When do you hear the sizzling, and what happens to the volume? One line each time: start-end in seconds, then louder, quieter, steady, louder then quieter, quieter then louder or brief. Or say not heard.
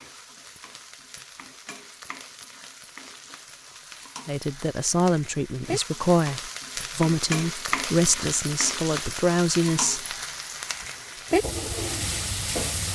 0.0-12.8 louder.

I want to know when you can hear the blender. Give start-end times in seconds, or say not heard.
not heard.